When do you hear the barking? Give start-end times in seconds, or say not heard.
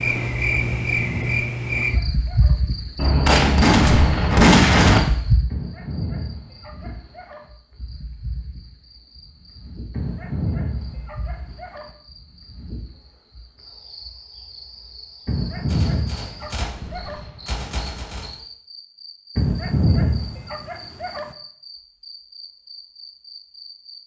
0.6-2.6, 5.5-7.5, 9.9-11.9, 15.2-17.2, 19.4-21.3.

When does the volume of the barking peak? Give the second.
20 s.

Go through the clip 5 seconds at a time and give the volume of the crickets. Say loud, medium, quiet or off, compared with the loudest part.
loud, medium, quiet, quiet, quiet.